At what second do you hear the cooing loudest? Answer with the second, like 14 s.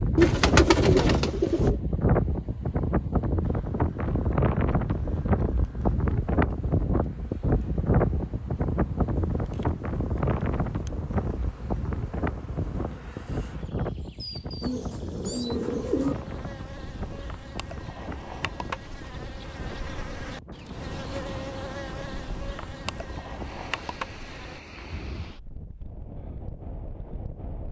1 s.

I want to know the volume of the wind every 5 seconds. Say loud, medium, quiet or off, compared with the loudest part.
loud, loud, medium, quiet, quiet, quiet.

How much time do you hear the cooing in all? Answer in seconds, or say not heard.
3 s.